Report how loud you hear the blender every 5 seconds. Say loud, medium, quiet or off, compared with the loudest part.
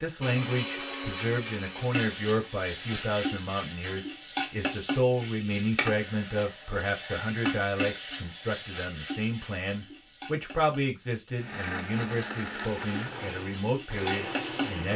loud, off, loud.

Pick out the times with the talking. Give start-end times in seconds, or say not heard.
0.0-14.9.